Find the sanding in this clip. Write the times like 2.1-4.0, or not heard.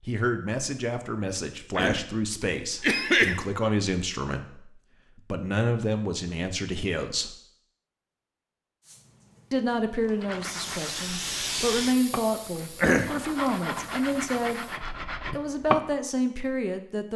10.2-15.9.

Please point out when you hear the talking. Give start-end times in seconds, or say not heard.
0.0-7.3, 9.5-14.7, 15.3-17.1.